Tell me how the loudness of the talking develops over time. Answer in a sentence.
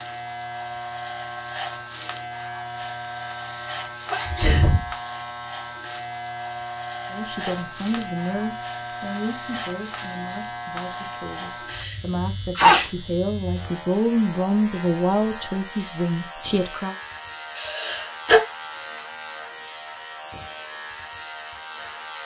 The loudness of the talking goes down, then up.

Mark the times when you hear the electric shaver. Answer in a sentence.
You can hear the electric shaver from 0.0 to 22.2 s.